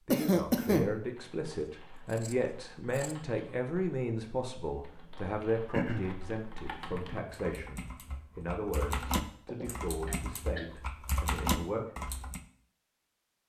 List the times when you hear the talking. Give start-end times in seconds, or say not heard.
0.1-11.8.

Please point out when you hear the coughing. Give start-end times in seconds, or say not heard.
0.1-0.9, 5.7-6.2, 9.4-10.7.